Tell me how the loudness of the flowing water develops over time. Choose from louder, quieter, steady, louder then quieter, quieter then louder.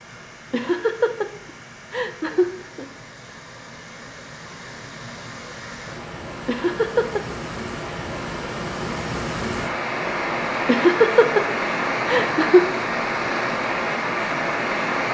louder.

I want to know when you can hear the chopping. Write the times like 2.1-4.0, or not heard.
not heard.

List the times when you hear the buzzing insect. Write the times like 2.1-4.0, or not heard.
not heard.